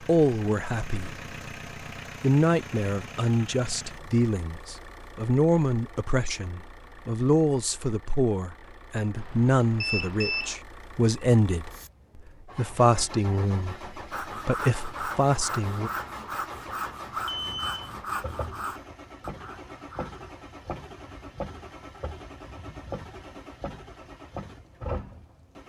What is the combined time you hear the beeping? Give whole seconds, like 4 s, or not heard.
2 s.